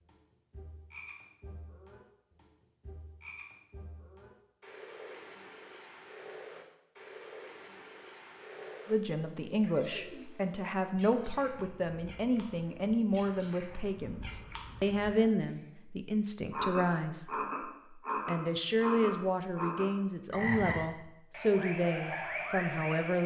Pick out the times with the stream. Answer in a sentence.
The stream can't be heard in this clip.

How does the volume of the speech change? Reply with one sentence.
The loudness of the speech stays about the same.